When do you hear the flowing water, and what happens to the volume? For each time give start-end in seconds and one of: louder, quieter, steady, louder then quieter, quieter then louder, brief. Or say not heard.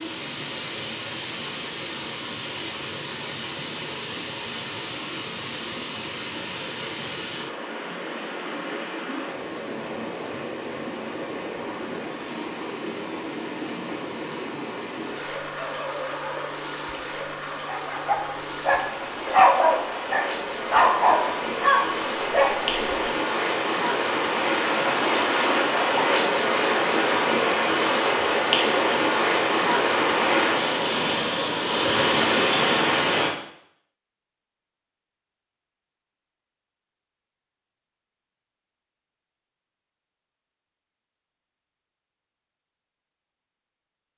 0.0-33.4 louder.